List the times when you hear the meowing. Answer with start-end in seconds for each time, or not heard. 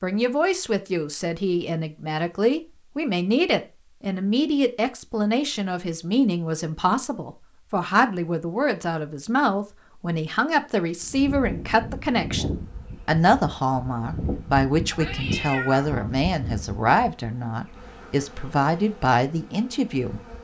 14.9-16.1.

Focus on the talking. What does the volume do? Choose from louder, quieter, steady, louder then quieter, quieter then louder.
steady.